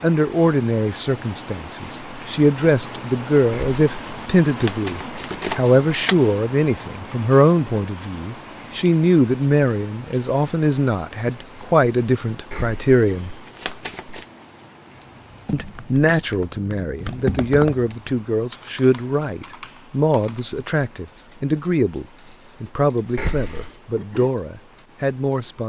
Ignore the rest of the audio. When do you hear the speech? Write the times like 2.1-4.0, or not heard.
0.0-13.3, 15.5-25.6.